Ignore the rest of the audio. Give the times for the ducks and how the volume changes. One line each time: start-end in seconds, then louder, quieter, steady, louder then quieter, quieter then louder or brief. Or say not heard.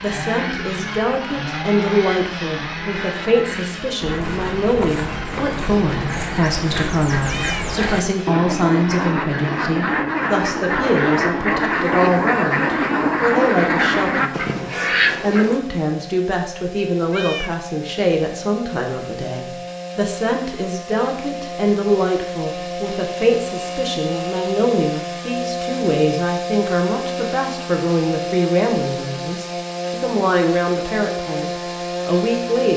4.0-15.6 louder.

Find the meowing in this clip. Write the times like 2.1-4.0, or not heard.
7.2-7.7, 17.1-17.6.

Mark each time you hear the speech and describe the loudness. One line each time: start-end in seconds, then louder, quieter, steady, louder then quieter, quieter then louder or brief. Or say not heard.
0.0-32.7 steady.